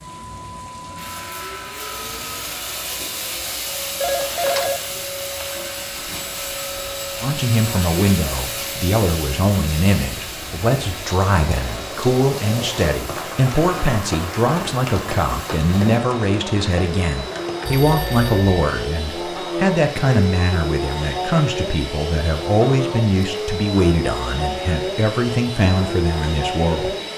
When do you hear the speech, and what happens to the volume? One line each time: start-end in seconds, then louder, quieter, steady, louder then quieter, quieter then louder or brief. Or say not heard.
7.2-26.9 steady.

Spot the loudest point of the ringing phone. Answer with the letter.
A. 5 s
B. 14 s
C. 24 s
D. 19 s
A.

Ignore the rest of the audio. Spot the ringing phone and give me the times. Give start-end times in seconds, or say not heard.
4.0-5.5, 17.6-18.8.